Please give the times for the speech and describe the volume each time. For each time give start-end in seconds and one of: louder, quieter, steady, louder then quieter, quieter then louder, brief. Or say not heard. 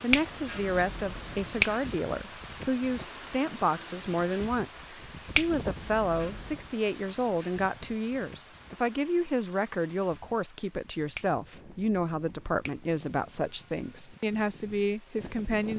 0.0-15.7 steady.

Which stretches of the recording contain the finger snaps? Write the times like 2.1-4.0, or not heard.
0.1-1.8, 5.3-6.7, 11.2-12.8.